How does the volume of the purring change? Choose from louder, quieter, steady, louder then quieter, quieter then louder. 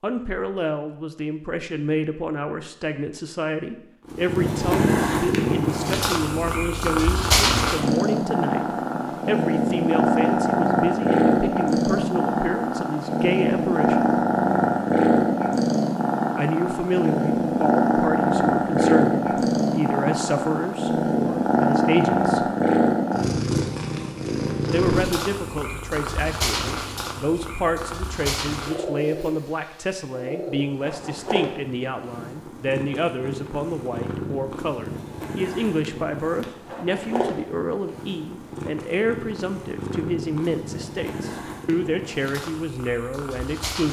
quieter.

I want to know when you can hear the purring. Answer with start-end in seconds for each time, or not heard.
4.0-43.8.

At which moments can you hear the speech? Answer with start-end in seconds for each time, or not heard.
0.0-14.2, 16.4-22.5, 24.6-43.8.